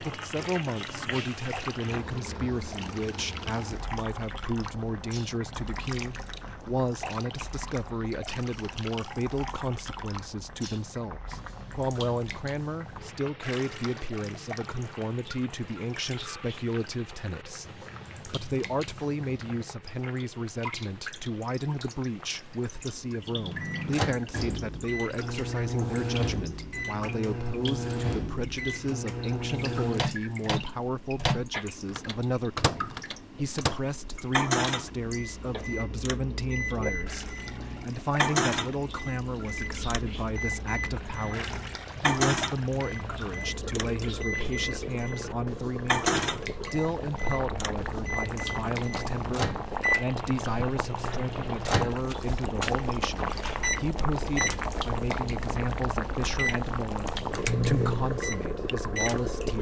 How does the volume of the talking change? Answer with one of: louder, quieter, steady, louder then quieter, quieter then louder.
steady.